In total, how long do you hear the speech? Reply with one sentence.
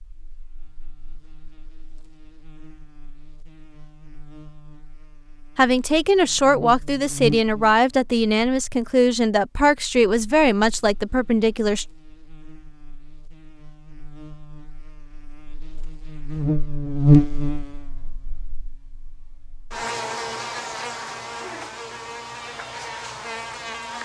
You can hear the speech for 6 seconds altogether.